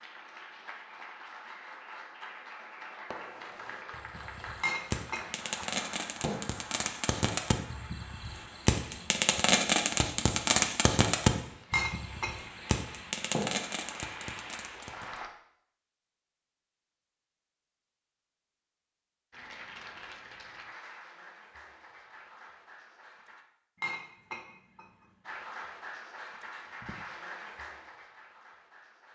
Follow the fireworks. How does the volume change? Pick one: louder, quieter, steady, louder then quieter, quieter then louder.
louder then quieter.